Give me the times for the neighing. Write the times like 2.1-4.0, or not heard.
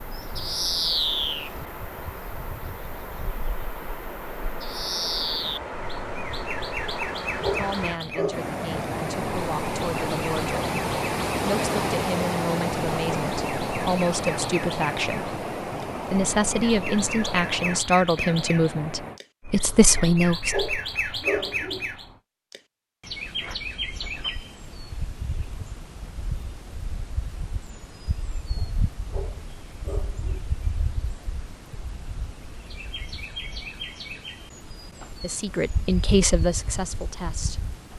not heard.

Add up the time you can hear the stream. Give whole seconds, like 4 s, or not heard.
19 s.